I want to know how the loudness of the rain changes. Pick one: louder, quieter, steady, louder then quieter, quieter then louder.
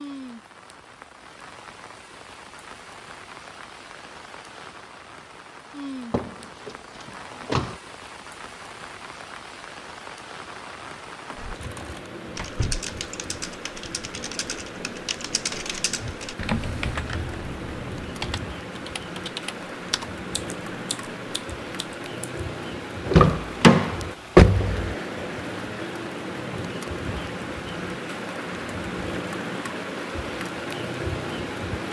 louder.